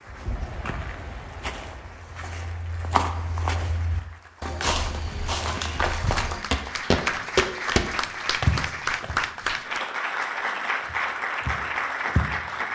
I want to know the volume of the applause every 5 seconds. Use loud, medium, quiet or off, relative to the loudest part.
quiet, loud, loud.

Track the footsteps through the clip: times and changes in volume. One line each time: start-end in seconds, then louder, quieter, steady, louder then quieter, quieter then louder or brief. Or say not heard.
0.1-9.2 louder
10.8-12.3 brief.